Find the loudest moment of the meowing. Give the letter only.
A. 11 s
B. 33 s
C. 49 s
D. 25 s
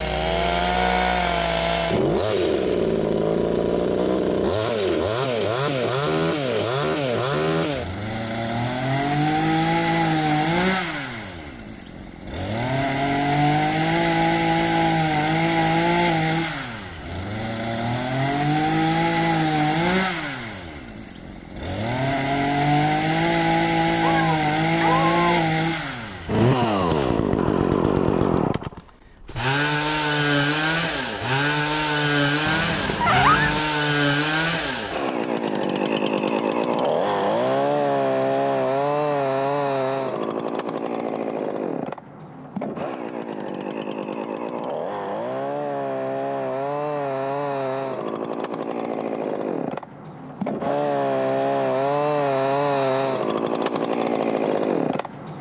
B.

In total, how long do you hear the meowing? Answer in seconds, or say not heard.
2 s.